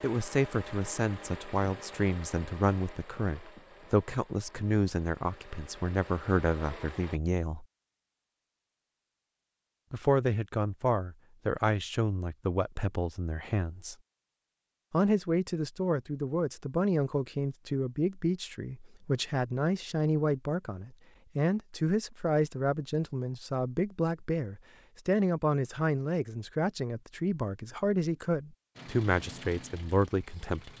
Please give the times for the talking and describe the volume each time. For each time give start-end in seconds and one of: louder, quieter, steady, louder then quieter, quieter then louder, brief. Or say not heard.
0.0-7.7 steady
9.9-13.9 quieter
14.9-30.7 steady.